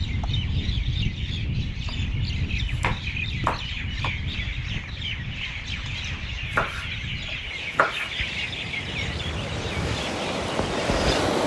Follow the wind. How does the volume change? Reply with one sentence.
The loudness of the wind goes down, then up.